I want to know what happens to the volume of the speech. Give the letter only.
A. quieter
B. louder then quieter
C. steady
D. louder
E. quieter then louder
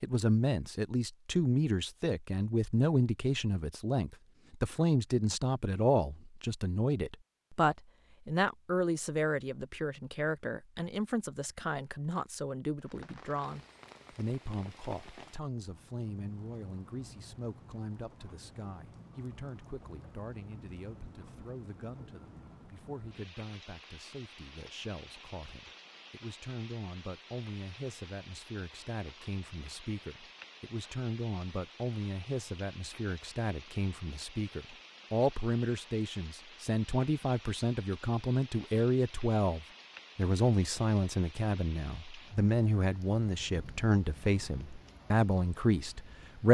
E.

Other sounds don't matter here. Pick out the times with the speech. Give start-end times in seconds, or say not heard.
0.0-46.4.